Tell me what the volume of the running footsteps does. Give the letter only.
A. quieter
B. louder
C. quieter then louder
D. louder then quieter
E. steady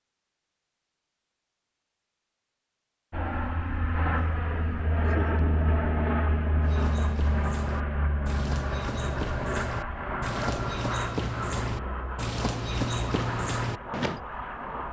B.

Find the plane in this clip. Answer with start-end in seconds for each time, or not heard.
3.1-14.8.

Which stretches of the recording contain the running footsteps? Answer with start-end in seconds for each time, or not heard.
6.6-14.2.